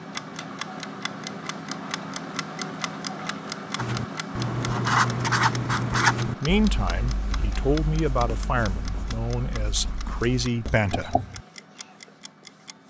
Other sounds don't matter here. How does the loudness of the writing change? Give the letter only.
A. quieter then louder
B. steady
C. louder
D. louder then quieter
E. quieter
E.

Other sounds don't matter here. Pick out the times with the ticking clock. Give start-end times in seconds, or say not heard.
0.0-12.8.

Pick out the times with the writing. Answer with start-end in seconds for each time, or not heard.
3.8-11.4.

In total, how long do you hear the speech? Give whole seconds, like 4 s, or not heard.
5 s.